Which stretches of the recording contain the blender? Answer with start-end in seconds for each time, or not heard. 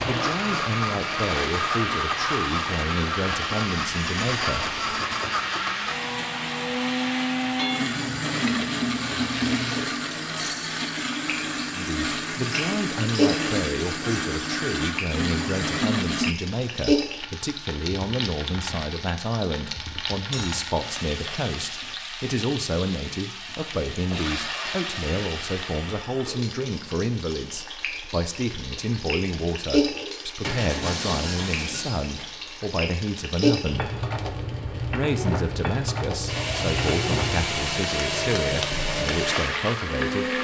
0.0-16.4, 36.2-40.3.